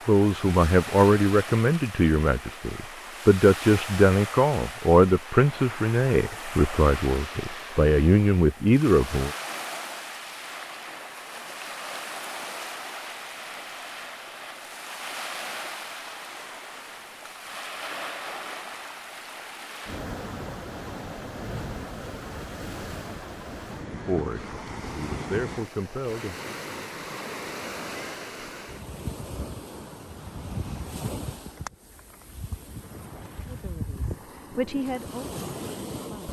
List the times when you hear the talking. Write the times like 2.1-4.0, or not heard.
0.1-9.3, 24.1-26.4, 33.5-36.2.